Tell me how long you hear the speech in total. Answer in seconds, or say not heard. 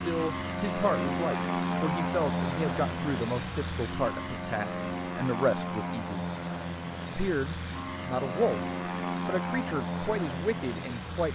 10 s.